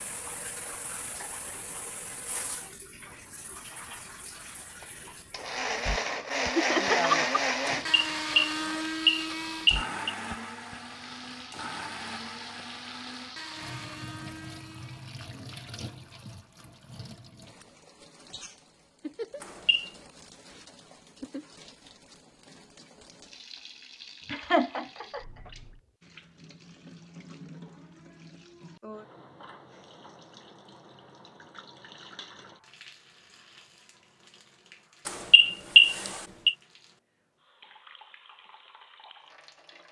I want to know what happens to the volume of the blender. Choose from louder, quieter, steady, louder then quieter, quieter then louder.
quieter.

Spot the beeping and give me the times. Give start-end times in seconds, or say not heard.
7.7-10.1, 19.4-19.9, 35.0-36.5.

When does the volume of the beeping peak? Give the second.
36 s.